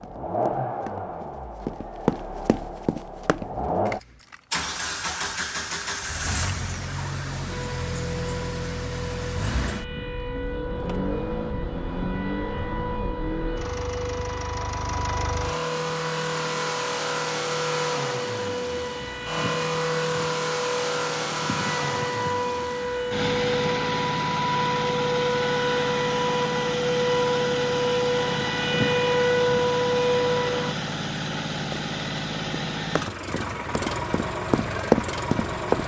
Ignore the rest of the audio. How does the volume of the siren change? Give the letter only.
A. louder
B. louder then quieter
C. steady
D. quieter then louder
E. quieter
A.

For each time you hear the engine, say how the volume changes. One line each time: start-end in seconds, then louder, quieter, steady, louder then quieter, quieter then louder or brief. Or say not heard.
0.0-35.8 steady.